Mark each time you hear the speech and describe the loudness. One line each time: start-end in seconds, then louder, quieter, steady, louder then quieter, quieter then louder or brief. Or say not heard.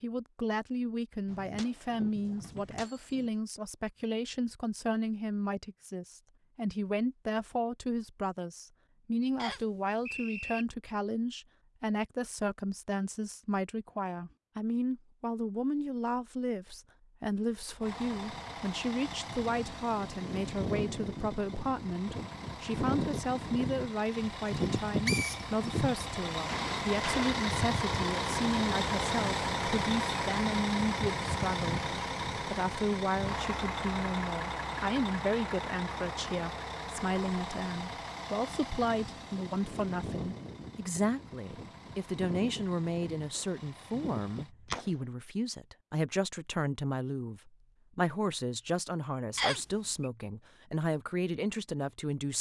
0.0-52.3 steady.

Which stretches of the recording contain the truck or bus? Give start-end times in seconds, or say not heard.
17.8-44.5.